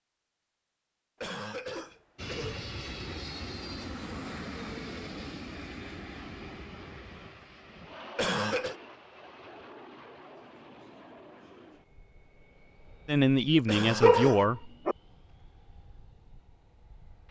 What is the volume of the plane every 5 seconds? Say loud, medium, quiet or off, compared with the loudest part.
loud, medium, quiet, quiet.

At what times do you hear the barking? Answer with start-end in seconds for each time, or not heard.
14.0-14.9.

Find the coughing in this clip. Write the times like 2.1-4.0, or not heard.
1.2-2.6, 8.2-8.8, 13.7-14.4.